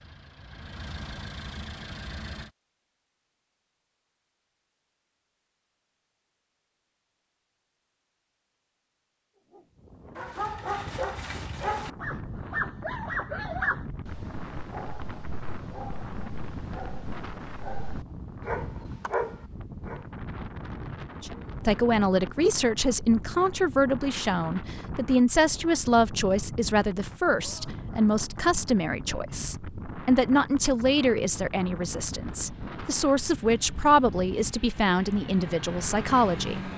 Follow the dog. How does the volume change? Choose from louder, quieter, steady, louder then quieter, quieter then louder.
quieter then louder.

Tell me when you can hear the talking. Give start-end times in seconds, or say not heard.
21.2-36.7.